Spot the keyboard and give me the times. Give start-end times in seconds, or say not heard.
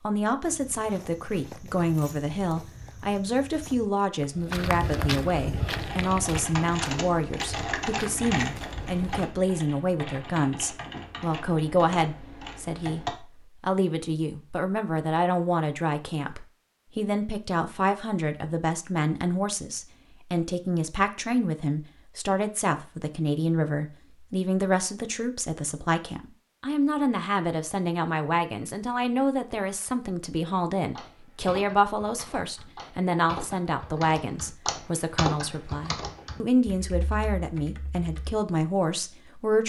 5.5-13.1, 30.9-38.4.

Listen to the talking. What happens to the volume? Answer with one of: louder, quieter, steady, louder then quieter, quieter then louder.
steady.